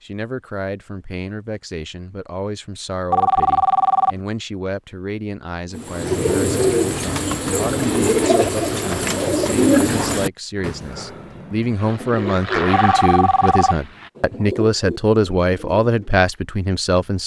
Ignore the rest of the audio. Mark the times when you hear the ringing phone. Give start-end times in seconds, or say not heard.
3.1-4.2, 12.7-13.8.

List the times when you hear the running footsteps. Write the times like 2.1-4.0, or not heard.
not heard.